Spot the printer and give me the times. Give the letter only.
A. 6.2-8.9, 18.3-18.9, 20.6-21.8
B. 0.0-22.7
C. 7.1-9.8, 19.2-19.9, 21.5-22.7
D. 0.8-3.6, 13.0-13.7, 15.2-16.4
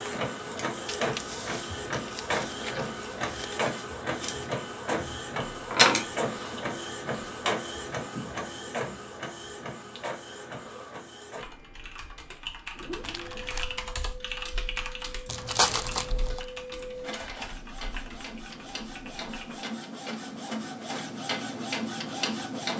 B.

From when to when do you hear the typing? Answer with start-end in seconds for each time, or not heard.
11.3-19.6.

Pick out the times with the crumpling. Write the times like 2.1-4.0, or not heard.
0.8-3.6, 13.0-13.7, 15.2-16.4.